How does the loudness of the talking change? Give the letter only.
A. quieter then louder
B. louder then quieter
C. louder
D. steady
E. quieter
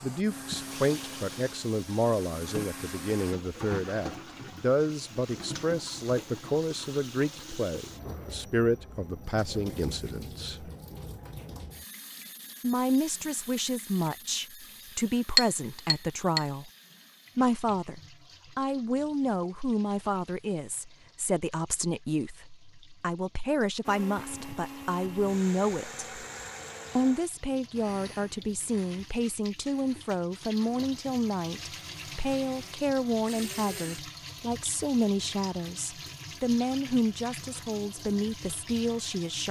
D.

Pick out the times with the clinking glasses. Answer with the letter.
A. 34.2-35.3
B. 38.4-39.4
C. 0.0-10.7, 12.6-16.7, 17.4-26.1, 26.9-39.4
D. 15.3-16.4
D.